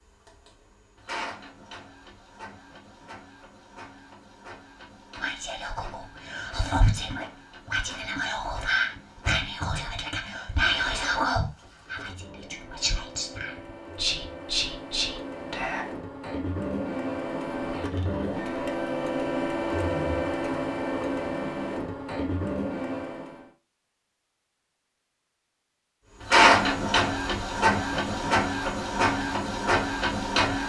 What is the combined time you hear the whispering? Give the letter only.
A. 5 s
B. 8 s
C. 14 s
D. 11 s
D.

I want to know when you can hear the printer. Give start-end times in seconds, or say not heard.
0.0-23.5, 26.2-30.6.